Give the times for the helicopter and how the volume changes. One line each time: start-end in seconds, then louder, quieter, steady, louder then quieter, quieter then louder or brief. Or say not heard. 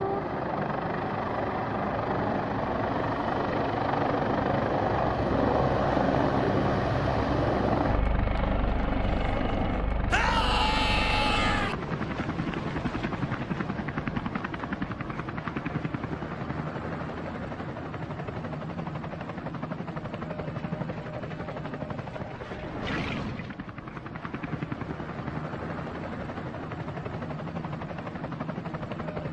0.0-29.2 quieter.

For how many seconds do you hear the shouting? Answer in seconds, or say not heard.
2 s.